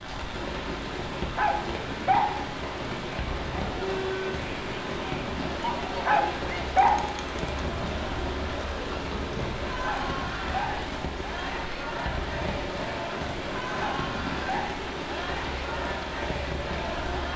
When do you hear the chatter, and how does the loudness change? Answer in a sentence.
You can hear the chatter from 3.0 to 17.3 s, at a steady volume.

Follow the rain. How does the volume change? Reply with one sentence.
The volume of the rain stays about the same.